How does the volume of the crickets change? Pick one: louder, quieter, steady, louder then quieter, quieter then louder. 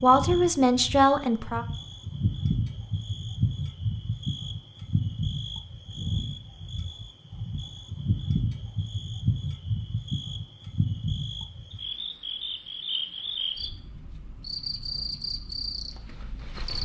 steady.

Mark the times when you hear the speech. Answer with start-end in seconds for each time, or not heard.
0.0-1.6.